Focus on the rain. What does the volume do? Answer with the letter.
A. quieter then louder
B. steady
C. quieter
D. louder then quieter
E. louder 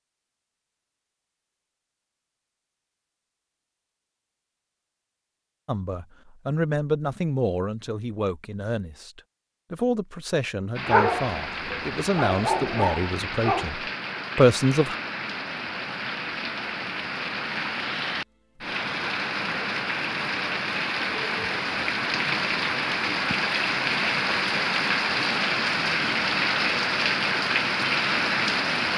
E.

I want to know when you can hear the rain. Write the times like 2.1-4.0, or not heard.
10.8-28.9.